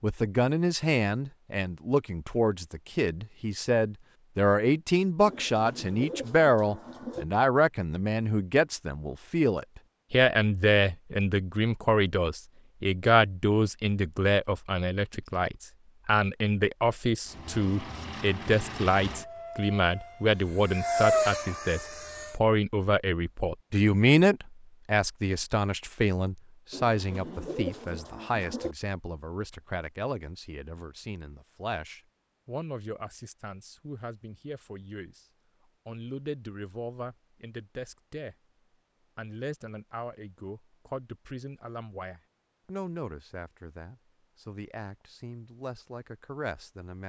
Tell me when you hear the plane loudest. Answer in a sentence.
The loudest moment of the plane is at 21 seconds.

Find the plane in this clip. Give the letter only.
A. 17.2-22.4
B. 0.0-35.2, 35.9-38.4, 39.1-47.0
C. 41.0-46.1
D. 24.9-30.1
A.